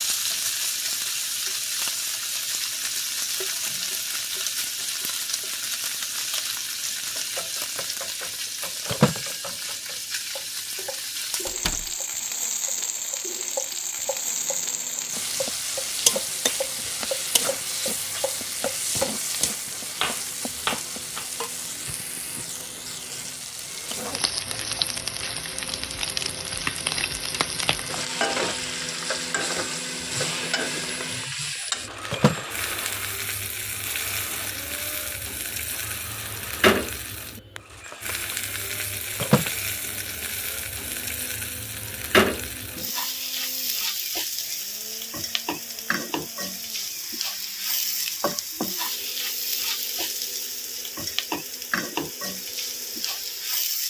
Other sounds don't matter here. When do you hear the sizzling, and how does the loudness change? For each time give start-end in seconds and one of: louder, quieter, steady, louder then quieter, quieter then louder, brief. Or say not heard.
0.0-53.8 steady.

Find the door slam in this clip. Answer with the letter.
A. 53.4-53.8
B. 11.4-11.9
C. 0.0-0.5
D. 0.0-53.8
B.